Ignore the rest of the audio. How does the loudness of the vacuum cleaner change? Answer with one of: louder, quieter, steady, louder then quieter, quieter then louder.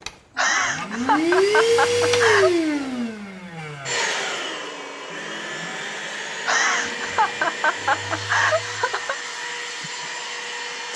quieter.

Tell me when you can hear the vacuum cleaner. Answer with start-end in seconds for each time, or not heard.
0.0-10.9.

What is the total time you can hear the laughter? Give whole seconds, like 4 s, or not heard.
5 s.